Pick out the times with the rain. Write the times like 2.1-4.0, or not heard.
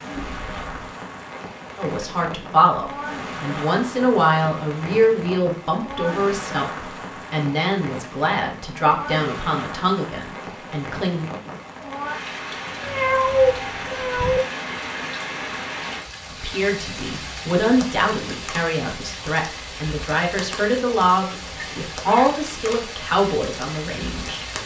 0.0-24.6.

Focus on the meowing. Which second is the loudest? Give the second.
13 s.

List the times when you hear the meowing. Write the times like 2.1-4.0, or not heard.
0.1-0.8, 12.8-14.4, 21.6-22.4.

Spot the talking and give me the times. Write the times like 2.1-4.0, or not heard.
1.8-11.2, 16.3-24.4.